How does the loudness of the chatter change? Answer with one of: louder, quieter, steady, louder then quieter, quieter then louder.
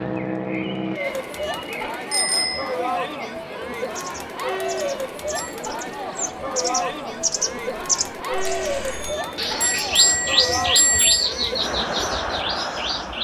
steady.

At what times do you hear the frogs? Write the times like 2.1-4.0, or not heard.
not heard.